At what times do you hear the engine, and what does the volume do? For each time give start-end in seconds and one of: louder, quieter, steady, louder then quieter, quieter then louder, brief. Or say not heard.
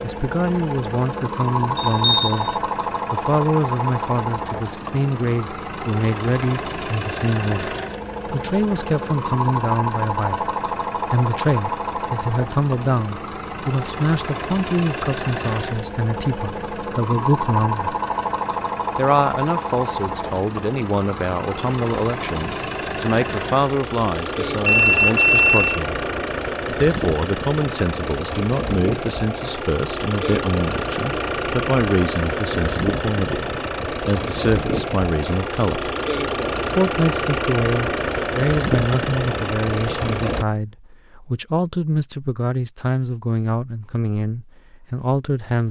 0.0-40.5 steady.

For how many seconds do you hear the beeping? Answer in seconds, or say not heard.
2 s.